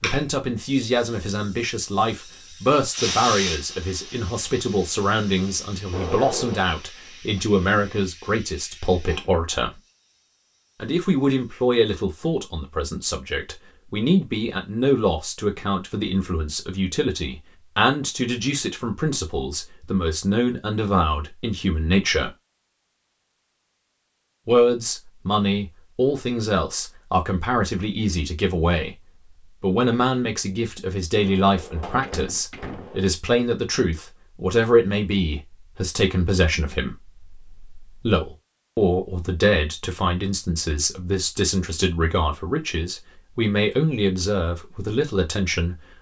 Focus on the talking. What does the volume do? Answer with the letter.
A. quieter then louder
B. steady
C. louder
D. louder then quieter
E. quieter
B.